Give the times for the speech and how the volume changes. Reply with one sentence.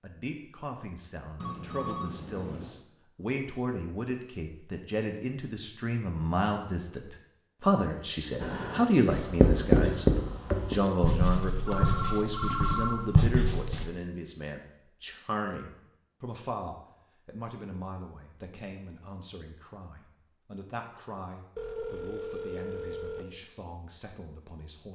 You can hear the speech from 0.0 to 24.8 s, getting louder then quieter.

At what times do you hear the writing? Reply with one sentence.
The writing can be heard from 8.4 to 13.8 s.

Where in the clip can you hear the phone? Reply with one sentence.
The phone can be heard from 1.4 to 2.8 s, from 11.7 to 13.0 s and from 21.6 to 23.2 s.